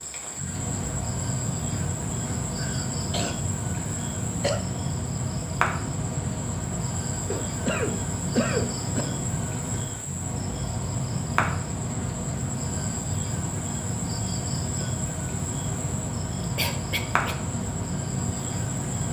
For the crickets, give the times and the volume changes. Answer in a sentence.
You can hear the crickets from 0.0 to 19.0 s, at a steady volume.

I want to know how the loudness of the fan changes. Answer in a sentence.
The loudness of the fan stays about the same.